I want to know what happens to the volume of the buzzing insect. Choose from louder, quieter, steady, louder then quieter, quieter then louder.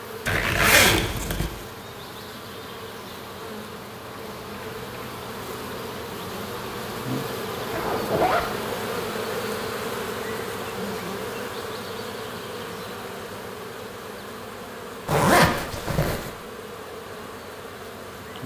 louder then quieter.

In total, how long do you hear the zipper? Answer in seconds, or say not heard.
3 s.